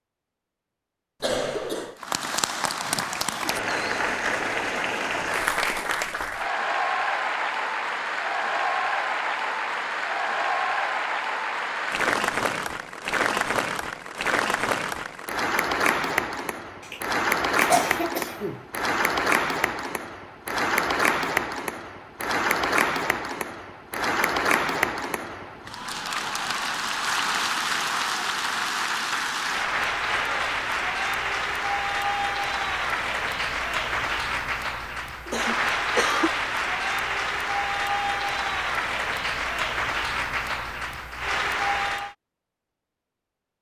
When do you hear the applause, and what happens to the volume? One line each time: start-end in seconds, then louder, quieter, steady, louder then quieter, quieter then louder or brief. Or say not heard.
2.0-42.1 steady.